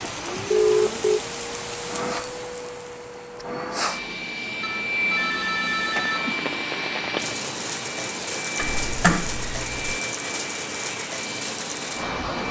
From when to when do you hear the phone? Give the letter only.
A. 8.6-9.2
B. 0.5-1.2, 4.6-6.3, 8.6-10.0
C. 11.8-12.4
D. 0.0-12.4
B.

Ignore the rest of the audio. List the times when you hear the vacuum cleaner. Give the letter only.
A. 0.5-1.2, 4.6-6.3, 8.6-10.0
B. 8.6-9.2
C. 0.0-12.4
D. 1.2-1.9
C.